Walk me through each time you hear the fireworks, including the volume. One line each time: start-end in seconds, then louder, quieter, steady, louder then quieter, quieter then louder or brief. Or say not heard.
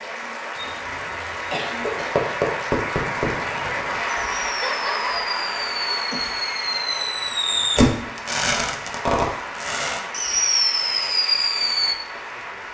2.1-11.9 louder.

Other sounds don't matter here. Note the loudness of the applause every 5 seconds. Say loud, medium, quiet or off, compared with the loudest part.
loud, loud, medium.